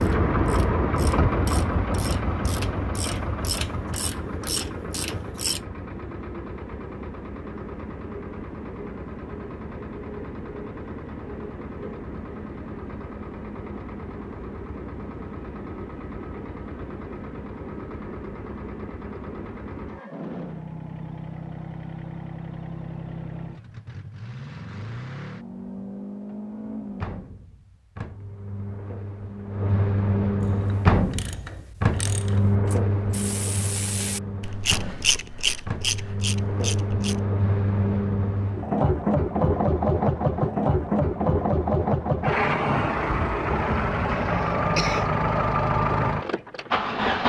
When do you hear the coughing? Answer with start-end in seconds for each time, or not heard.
44.0-45.1.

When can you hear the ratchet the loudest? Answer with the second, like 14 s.
35 s.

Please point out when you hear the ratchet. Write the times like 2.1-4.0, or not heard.
0.0-5.6, 30.4-37.2.